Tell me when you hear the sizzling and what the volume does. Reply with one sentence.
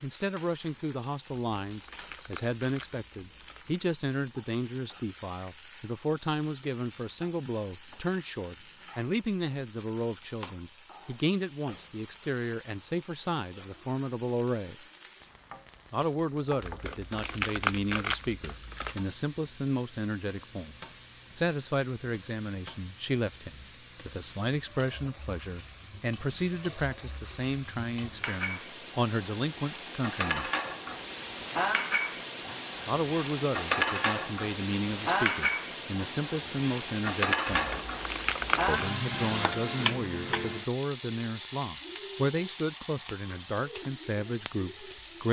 The sizzling can be heard from 0.0 to 45.2 s, getting louder.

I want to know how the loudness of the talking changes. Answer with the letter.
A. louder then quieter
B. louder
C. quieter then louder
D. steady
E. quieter
D.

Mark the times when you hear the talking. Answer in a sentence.
You can hear the talking from 0.0 to 14.8 s, from 15.9 to 20.8 s, from 21.4 to 30.5 s, from 32.9 to 37.8 s and from 38.6 to 45.2 s.